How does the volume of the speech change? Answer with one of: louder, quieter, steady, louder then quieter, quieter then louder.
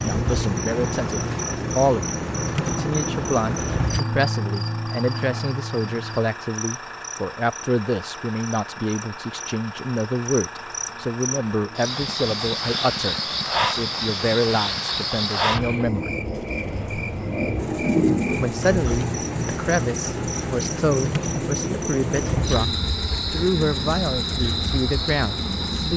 steady.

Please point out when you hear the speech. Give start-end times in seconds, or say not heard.
0.0-16.1, 18.4-25.9.